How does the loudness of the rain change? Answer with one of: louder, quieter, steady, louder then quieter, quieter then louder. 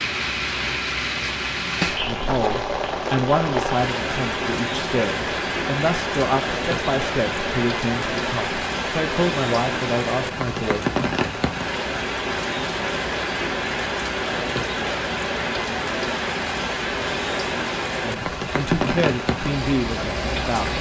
steady.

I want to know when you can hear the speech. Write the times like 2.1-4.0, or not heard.
2.0-10.8, 18.0-20.7.